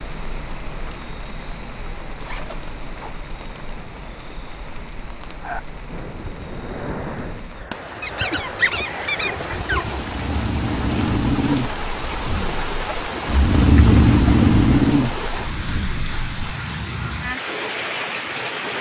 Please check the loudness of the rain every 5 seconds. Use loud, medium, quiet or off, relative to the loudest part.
medium, medium, loud, loud.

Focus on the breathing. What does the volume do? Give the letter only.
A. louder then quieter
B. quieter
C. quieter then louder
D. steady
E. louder
E.